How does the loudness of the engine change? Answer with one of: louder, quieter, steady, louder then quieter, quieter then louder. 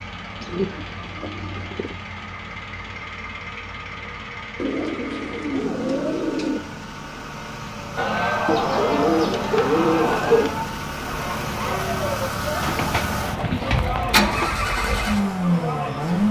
louder.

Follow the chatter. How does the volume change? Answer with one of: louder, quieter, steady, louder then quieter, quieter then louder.
quieter.